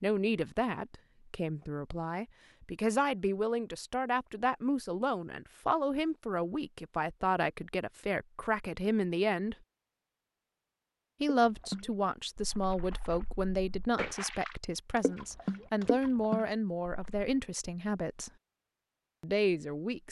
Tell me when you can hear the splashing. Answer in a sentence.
You can hear the splashing from 11.2 to 17.4 s.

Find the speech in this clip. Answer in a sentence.
The speech can be heard from 0.0 to 9.6 s, from 11.2 to 18.3 s and from 19.2 to 20.0 s.